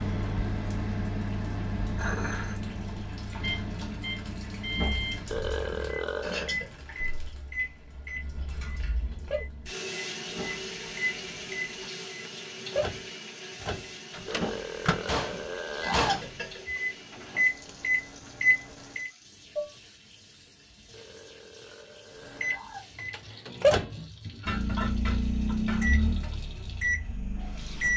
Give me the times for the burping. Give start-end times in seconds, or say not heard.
5.3-6.5, 14.2-16.2, 20.9-22.9.